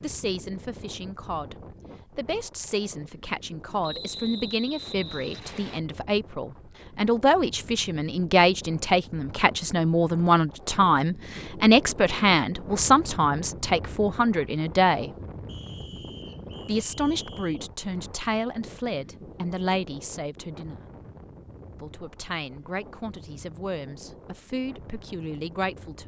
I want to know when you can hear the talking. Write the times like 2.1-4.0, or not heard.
0.0-1.6, 2.1-15.1, 16.6-20.8, 21.8-26.0.